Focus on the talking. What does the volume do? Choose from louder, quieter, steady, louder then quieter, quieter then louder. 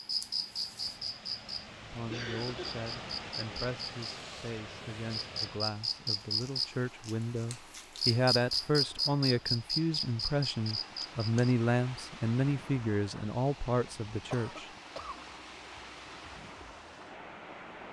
louder.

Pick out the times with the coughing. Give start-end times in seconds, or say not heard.
2.0-2.9, 13.8-15.2.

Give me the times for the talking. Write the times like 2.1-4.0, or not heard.
1.9-14.7.